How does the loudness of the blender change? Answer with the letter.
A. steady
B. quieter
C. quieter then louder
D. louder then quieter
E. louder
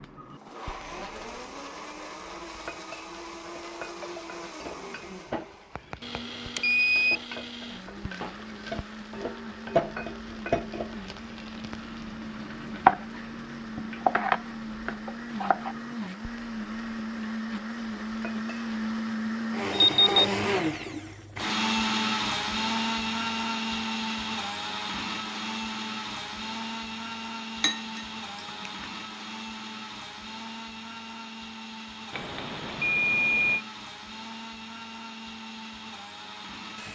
D.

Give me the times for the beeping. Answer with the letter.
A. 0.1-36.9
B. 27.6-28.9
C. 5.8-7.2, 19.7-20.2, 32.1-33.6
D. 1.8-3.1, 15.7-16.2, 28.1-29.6
C.